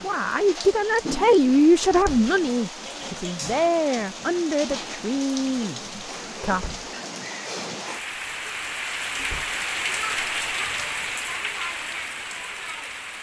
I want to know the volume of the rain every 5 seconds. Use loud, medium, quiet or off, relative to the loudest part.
medium, loud, loud.